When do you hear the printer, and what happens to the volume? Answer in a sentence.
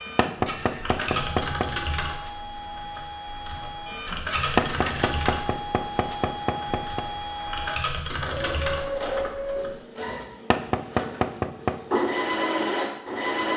The printer can be heard from 0.0 to 13.5 s, getting louder.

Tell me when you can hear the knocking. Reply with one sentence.
You can hear the knocking from 0.1 to 1.7 s, from 4.5 to 7.0 s and from 10.5 to 11.8 s.